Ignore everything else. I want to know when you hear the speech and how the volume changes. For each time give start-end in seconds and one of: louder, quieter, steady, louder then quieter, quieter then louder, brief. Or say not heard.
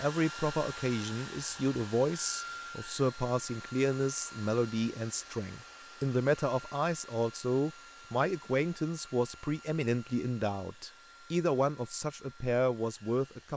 0.0-13.5 steady.